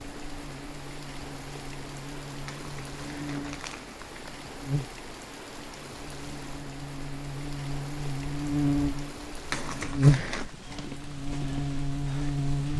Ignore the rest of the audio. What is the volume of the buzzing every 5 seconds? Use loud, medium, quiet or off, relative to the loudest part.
quiet, medium, loud.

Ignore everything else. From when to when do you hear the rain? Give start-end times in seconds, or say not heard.
0.0-12.7.